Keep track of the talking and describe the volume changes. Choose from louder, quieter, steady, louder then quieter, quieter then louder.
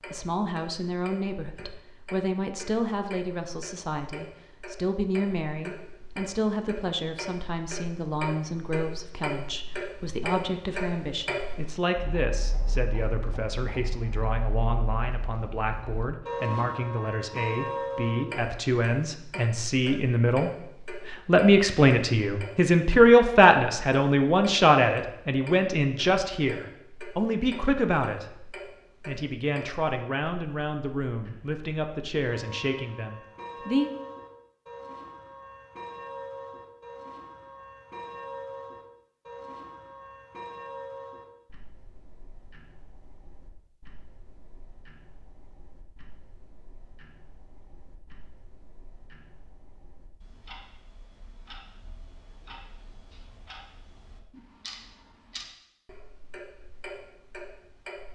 louder then quieter.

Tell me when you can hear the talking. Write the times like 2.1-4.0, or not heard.
0.1-33.9.